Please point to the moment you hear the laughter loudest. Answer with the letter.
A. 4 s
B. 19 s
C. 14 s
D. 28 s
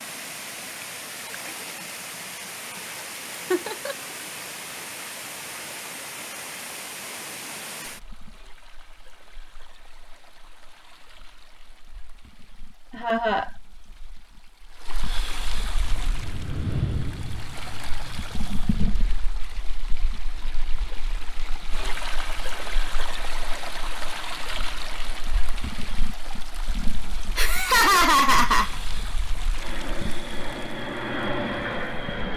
D.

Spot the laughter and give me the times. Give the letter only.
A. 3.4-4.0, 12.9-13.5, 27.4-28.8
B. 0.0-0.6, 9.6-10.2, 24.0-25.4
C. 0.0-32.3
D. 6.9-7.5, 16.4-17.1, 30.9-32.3
A.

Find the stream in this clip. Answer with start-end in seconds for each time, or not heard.
0.0-32.3.